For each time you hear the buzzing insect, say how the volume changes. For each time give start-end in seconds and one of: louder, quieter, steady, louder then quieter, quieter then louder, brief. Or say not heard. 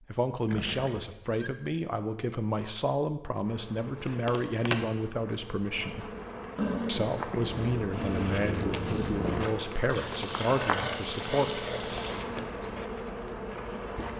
3.5-14.1 steady.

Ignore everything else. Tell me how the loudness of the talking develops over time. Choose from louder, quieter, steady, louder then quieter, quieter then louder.
steady.